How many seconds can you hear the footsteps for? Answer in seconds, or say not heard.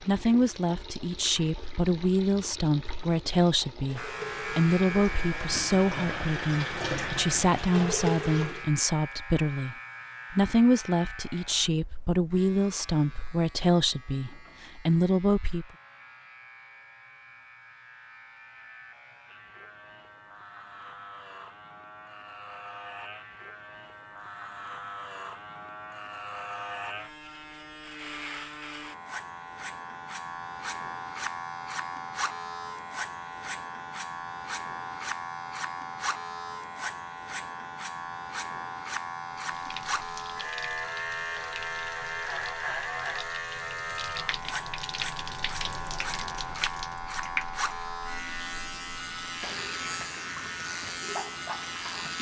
not heard.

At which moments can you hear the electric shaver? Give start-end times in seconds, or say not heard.
4.0-52.1.